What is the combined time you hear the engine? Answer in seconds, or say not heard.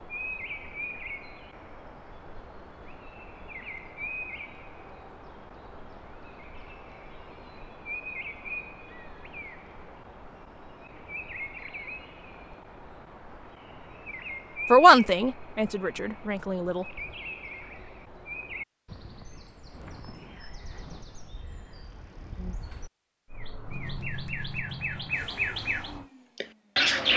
3 s.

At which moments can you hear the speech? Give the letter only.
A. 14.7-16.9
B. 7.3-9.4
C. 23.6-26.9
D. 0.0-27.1
A.